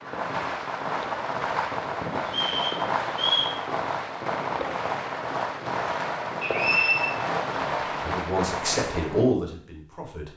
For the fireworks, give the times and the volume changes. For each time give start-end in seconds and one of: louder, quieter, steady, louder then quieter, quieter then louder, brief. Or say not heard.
0.0-9.3 steady.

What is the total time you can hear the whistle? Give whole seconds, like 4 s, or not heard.
2 s.